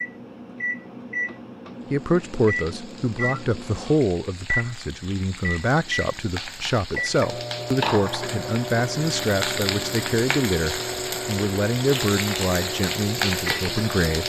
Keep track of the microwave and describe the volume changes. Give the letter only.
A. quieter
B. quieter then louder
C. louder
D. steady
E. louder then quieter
D.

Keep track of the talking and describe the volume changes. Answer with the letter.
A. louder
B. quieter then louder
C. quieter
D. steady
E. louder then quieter
D.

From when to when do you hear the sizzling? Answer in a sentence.
You can hear the sizzling from 1.8 to 14.2 s.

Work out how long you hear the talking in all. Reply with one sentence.
You can hear the talking for 12 seconds altogether.